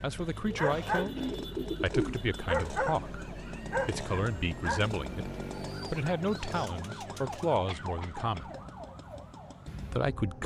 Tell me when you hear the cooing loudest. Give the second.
2 s.